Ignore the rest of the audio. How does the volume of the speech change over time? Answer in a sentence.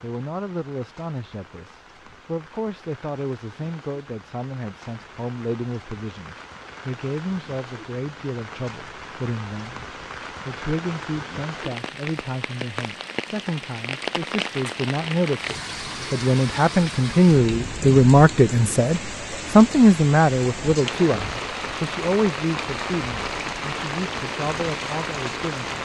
The volume of the speech goes up, then down.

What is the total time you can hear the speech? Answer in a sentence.
The speech can be heard for 26 seconds in total.